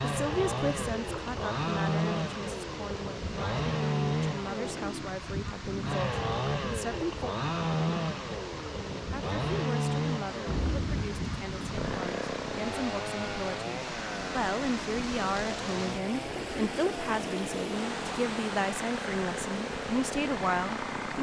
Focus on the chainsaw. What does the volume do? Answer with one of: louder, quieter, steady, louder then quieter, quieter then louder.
quieter.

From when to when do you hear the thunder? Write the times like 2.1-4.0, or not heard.
10.4-11.9.